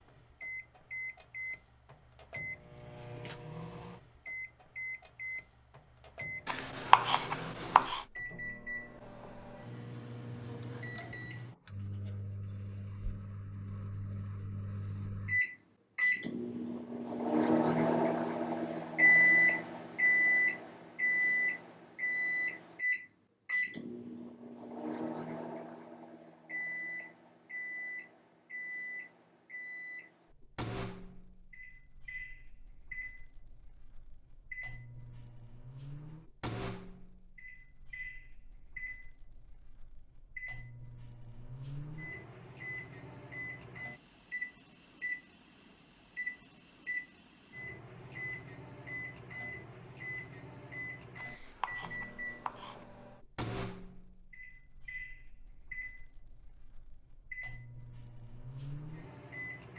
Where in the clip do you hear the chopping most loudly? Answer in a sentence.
The volume of the chopping peaks at 7 seconds.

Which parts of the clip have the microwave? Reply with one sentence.
The microwave can be heard from 0.0 to 59.7 s.